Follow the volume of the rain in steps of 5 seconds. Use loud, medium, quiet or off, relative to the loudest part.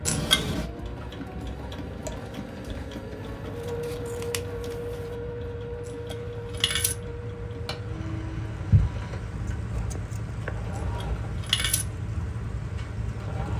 medium, loud, loud.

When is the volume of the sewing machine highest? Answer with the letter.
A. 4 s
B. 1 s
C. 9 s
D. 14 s
A.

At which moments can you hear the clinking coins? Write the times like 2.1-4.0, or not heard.
0.1-0.7, 5.8-7.0, 10.8-11.8.